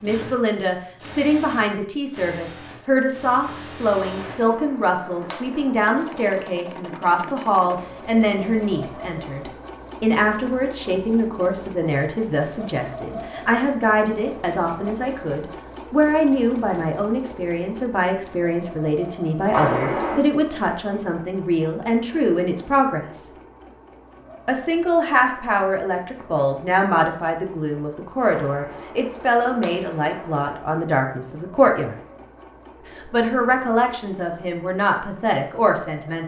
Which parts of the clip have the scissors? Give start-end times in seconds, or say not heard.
4.2-6.3, 19.5-20.2, 28.3-30.6.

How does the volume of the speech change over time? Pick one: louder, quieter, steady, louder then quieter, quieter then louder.
steady.